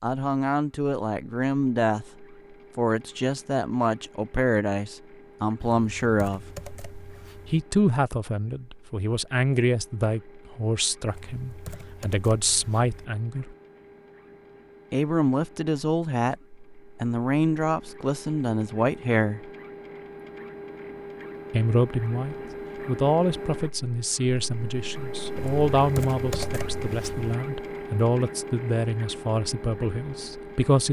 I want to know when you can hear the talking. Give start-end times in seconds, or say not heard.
0.0-2.0, 2.8-6.5, 7.5-13.6, 14.9-16.4, 17.0-19.5, 21.5-30.8.